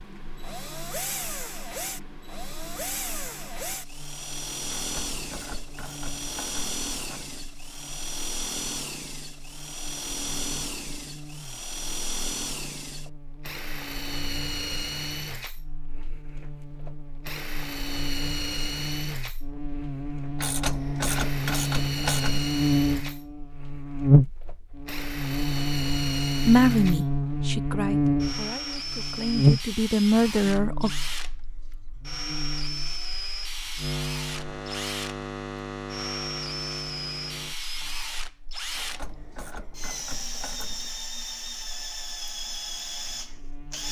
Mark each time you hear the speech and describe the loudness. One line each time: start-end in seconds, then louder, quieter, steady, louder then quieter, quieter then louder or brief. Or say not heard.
26.4-30.9 quieter then louder.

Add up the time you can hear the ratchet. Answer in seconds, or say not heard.
7 s.